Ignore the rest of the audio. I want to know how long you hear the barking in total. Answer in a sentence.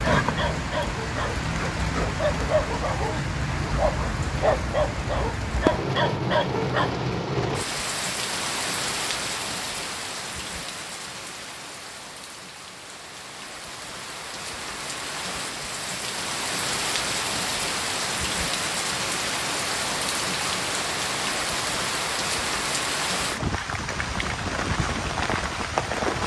The barking can be heard for 6 seconds in total.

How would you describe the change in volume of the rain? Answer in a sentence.
The loudness of the rain goes down, then up.